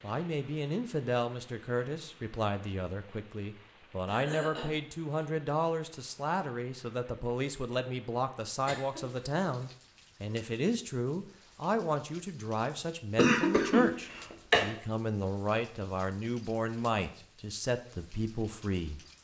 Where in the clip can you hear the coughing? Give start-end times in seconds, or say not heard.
4.0-4.8, 8.7-9.8, 13.2-14.7.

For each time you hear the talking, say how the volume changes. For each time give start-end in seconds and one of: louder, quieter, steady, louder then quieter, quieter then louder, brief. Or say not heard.
0.0-19.0 steady.